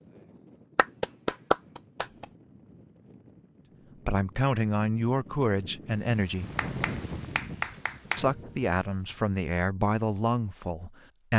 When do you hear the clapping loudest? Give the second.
1 s.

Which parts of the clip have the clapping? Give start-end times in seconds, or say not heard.
0.8-2.2, 6.5-8.2.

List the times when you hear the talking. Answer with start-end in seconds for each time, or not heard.
4.0-6.5, 8.2-11.3.